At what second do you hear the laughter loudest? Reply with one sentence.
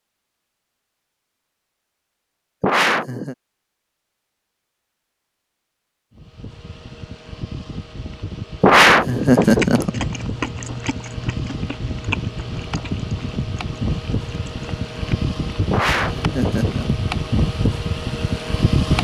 The volume of the laughter peaks at 9 seconds.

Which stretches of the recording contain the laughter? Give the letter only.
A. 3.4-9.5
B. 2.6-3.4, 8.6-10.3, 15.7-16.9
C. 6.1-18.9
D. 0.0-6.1
B.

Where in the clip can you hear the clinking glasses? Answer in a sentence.
You can't hear the clinking glasses here.